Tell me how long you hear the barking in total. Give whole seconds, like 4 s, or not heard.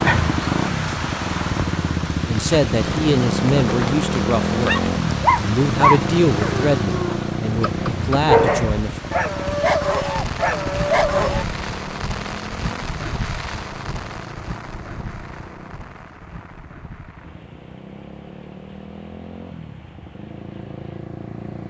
7 s.